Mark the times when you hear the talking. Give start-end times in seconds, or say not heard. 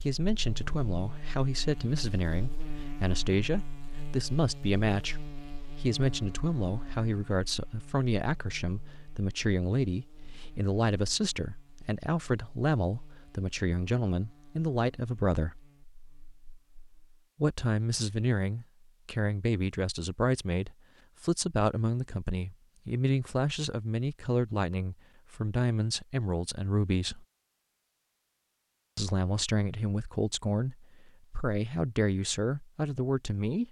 0.0-15.6, 17.4-27.2, 28.9-33.6.